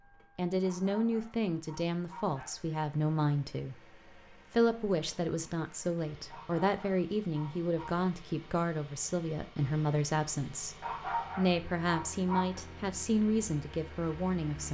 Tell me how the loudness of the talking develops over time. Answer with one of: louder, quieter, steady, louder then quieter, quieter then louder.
steady.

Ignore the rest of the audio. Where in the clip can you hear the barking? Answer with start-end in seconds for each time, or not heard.
0.6-2.5, 6.3-8.0, 10.8-12.6.